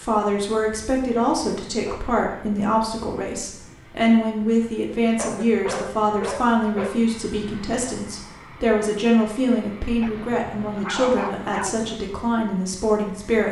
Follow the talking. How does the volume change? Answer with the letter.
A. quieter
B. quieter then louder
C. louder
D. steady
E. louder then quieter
D.